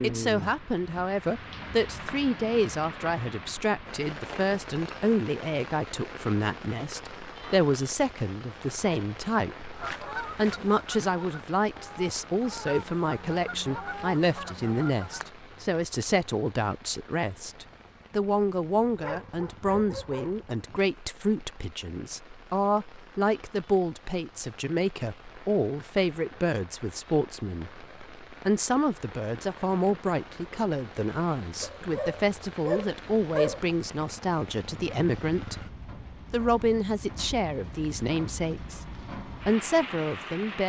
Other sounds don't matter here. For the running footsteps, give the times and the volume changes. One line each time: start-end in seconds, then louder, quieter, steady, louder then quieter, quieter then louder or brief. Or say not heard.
not heard.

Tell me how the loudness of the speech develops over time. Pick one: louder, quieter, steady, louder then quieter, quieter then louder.
steady.